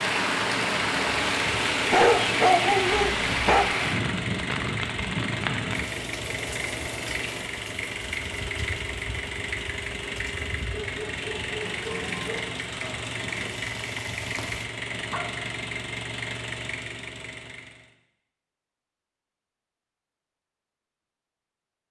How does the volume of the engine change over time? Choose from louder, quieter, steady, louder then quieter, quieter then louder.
steady.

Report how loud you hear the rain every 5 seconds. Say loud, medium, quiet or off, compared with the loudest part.
loud, medium, quiet, off, off.